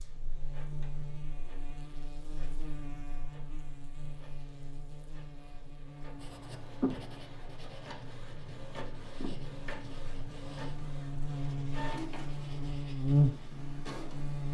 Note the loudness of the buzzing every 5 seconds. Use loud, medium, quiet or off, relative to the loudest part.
quiet, quiet, loud.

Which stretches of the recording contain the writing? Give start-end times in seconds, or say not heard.
6.2-13.6.